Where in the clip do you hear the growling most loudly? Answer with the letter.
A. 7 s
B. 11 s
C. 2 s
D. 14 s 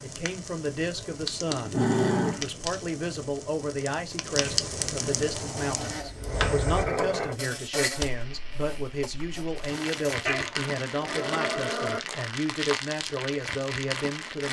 C.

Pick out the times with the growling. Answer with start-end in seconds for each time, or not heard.
1.4-2.5, 5.3-7.3, 10.2-12.0.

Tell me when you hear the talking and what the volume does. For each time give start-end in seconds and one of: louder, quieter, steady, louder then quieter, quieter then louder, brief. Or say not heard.
0.0-14.4 steady.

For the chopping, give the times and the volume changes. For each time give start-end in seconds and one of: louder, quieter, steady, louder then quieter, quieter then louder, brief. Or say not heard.
not heard.